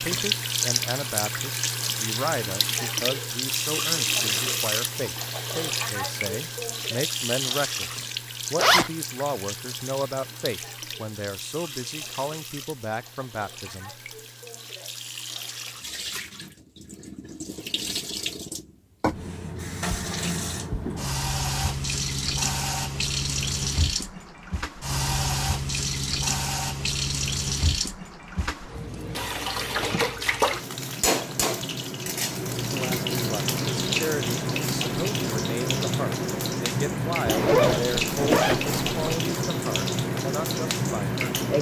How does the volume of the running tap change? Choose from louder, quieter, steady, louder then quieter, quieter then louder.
quieter then louder.